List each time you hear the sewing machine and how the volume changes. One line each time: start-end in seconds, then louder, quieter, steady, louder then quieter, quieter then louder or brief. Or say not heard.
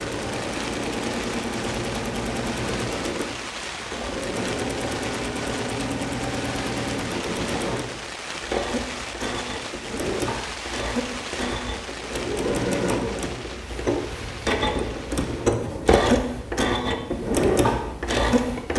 0.0-18.7 louder.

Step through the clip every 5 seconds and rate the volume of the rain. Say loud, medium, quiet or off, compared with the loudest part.
loud, loud, loud, medium.